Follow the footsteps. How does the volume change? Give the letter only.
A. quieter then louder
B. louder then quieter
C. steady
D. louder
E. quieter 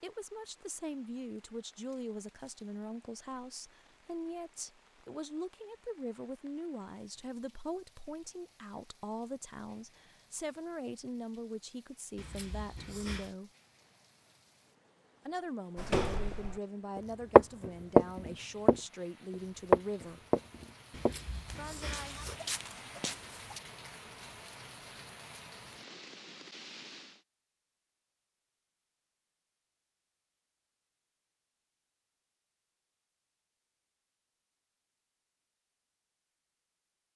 B.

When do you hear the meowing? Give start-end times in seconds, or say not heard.
12.2-13.3, 20.9-22.4.